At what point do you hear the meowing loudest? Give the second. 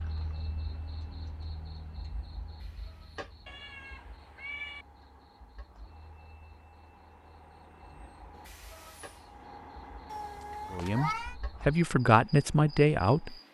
11 s.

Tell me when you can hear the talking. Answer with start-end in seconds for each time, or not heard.
10.7-13.3.